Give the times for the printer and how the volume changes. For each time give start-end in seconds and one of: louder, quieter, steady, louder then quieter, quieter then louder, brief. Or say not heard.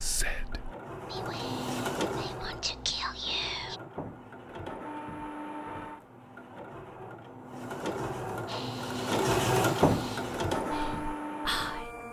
0.0-12.0 quieter then louder.